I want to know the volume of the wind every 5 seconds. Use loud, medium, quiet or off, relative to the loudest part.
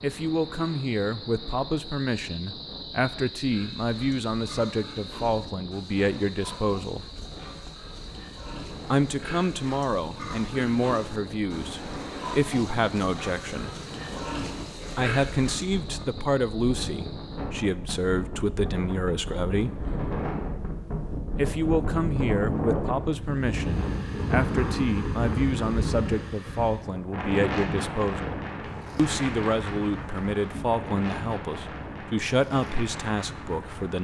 quiet, quiet, medium, medium, loud, loud, medium.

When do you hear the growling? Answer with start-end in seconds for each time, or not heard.
not heard.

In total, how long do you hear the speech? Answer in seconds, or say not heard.
29 s.